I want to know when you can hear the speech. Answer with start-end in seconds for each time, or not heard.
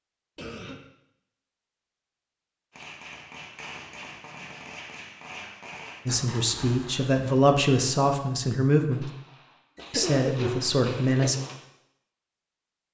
6.0-9.1, 9.9-11.3.